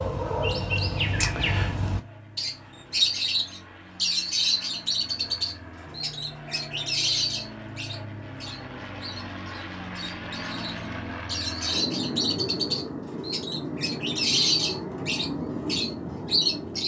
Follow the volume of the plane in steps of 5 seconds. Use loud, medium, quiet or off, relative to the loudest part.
quiet, medium, loud, loud.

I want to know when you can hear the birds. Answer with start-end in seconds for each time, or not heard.
0.0-16.8.